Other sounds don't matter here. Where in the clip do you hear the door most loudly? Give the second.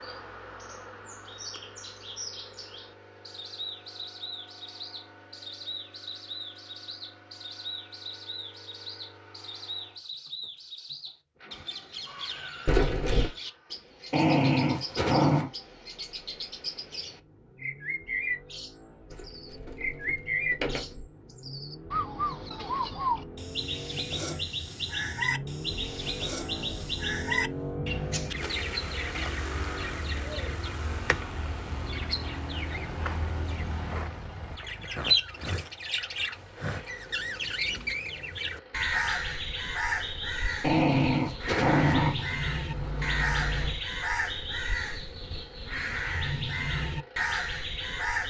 13 s.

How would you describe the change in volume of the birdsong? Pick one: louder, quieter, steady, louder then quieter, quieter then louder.
louder.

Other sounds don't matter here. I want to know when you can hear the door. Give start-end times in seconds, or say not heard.
12.7-13.3, 19.1-21.1, 42.7-43.8.